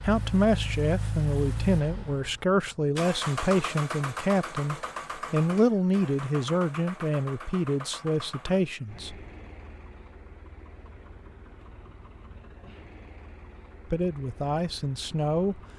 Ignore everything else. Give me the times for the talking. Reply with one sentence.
You can hear the talking from 0.0 to 9.2 s and from 13.9 to 15.6 s.